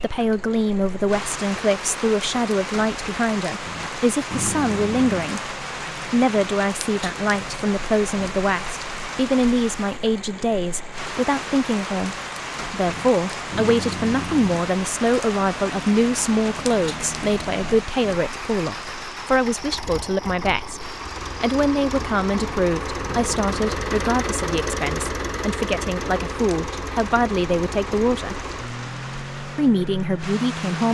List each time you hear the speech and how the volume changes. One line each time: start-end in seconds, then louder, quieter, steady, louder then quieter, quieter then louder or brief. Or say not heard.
0.0-28.5 steady
29.6-30.9 brief.